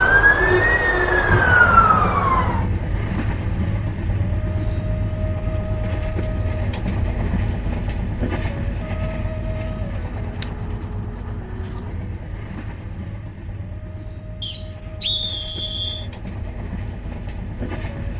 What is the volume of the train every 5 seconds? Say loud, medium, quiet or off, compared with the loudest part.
loud, loud, medium, medium.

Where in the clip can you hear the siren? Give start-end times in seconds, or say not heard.
0.0-2.6.